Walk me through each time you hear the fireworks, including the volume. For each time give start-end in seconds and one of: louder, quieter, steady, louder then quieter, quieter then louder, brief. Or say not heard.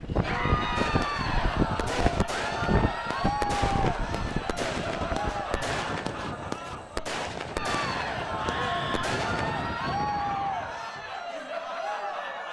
0.8-9.7 steady.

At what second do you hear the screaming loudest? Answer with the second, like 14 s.
9 s.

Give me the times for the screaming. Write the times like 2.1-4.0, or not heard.
1.2-1.9, 8.2-9.2.